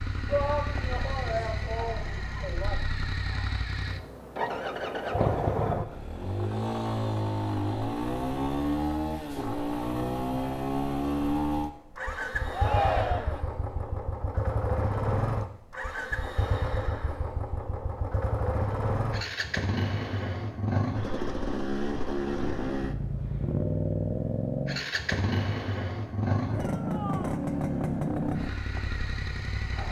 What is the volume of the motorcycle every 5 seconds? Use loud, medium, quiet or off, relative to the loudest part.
medium, loud, loud, loud, loud, loud.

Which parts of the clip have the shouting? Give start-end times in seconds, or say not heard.
0.2-2.9, 12.5-13.4, 26.5-27.4.